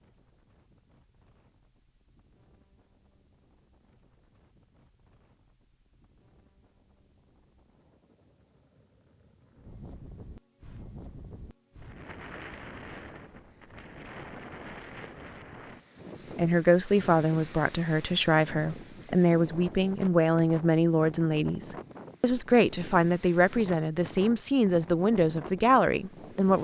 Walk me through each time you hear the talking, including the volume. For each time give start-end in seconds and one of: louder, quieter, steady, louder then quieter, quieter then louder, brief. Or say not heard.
16.4-26.5 steady.